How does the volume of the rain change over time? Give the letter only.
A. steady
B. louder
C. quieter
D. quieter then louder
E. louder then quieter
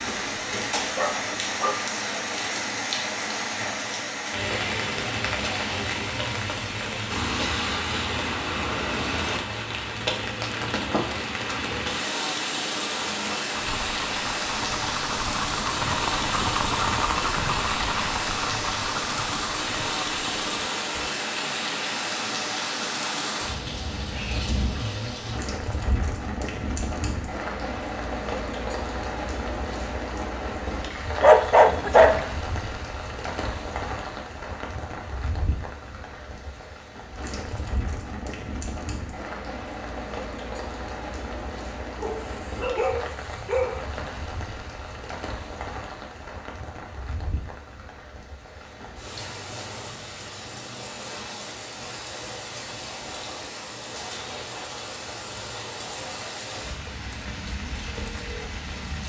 C.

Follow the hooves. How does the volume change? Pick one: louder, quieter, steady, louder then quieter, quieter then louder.
louder then quieter.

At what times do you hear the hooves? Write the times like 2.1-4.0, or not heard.
12.9-21.1.